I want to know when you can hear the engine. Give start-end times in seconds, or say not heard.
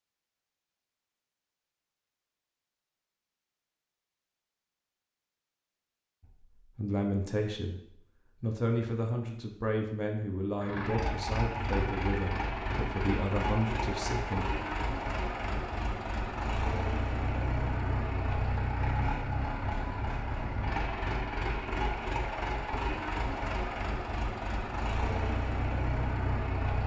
10.6-26.8.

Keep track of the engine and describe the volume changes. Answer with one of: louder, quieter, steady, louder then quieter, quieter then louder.
steady.